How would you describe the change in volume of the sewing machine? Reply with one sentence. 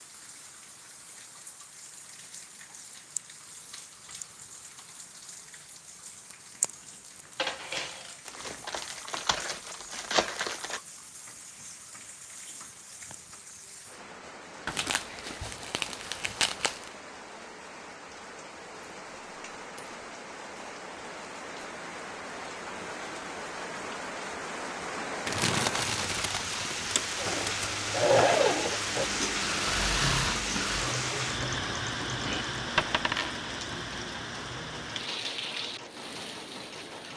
The loudness of the sewing machine goes down.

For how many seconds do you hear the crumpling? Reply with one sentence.
You can hear the crumpling for 7 seconds altogether.